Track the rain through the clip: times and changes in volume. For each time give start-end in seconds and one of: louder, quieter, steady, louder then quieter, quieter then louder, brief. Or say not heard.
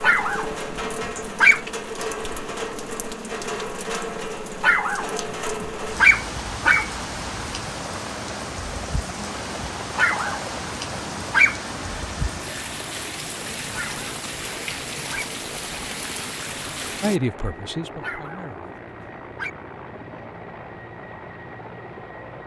0.0-17.2 steady.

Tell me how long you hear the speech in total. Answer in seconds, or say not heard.
2 s.